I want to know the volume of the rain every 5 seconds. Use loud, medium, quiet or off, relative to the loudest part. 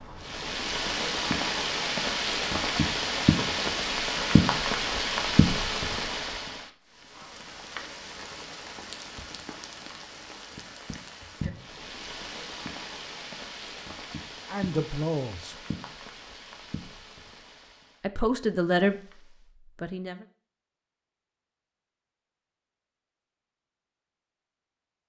loud, medium, quiet, quiet, off.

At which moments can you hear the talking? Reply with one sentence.
You can hear the talking from 14.4 to 15.6 s, from 18.0 to 19.0 s and from 19.8 to 20.2 s.